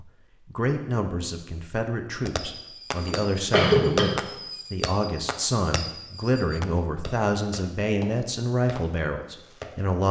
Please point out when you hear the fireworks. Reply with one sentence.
The fireworks can be heard from 2.2 to 9.8 s.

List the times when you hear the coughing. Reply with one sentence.
The coughing can be heard from 3.0 to 4.2 s.